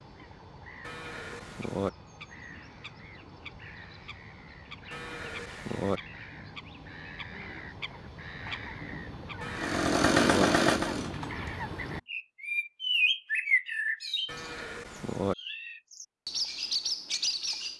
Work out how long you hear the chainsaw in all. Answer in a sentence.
You can hear the chainsaw for 2 seconds altogether.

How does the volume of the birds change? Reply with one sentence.
The volume of the birds goes up.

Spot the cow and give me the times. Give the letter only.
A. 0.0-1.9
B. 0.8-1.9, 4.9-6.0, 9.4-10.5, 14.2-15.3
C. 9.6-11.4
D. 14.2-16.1
B.